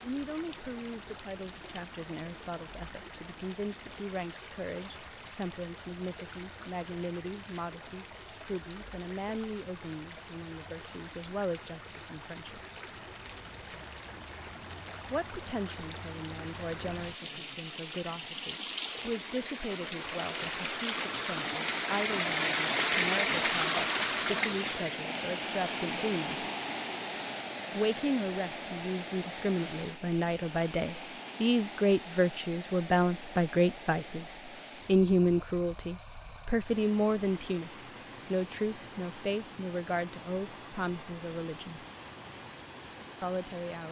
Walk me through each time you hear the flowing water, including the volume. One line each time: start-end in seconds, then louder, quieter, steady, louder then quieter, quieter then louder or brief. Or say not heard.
0.0-43.8 louder then quieter.